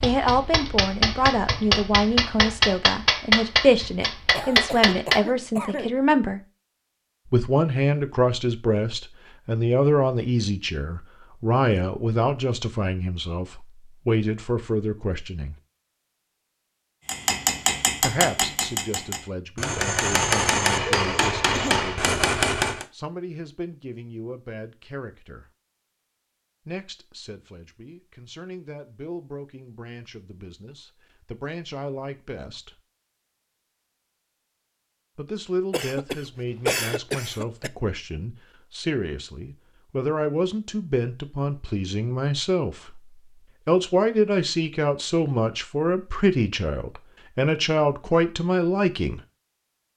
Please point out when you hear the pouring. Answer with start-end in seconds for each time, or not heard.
not heard.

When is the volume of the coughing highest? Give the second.
37 s.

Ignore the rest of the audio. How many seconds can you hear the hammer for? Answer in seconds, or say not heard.
11 s.